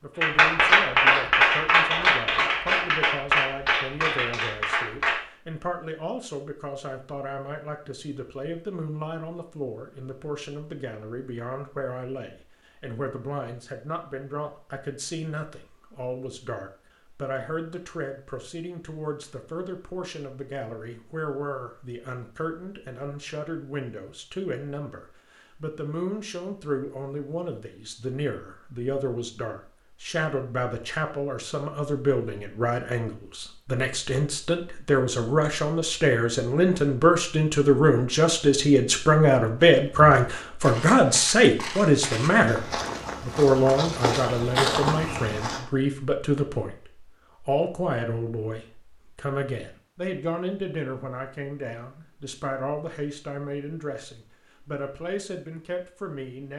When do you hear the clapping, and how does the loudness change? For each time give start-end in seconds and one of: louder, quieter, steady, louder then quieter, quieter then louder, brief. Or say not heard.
0.2-5.2 quieter.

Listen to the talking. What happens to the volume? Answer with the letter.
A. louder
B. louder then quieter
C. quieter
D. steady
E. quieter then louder
B.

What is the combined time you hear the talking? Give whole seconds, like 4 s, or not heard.
56 s.